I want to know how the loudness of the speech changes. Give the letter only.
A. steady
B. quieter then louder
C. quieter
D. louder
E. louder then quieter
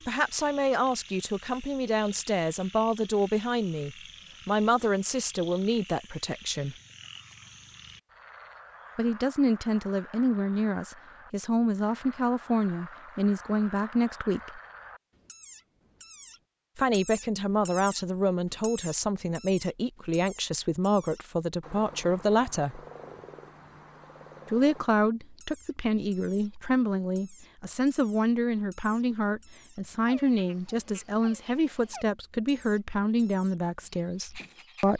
A.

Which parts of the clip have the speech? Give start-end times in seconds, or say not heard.
0.1-6.8, 8.9-14.6, 16.8-22.8, 24.4-34.9.